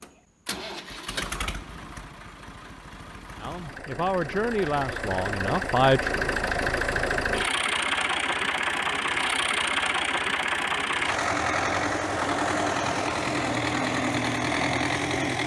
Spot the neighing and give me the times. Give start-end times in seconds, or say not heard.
not heard.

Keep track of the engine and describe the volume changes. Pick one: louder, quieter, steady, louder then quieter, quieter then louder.
louder.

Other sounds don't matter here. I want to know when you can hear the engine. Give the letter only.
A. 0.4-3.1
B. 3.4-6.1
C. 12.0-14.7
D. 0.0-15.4
D.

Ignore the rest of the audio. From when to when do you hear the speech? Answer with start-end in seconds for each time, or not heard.
3.4-6.1.